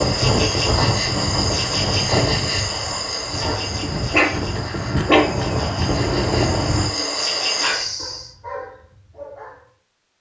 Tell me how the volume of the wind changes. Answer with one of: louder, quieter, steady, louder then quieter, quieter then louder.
quieter then louder.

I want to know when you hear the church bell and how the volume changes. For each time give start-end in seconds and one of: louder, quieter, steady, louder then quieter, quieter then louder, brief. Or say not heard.
not heard.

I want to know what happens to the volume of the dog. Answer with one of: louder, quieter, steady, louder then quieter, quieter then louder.
quieter.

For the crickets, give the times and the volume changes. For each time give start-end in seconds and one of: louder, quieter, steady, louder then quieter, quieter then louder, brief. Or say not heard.
0.0-8.3 quieter then louder.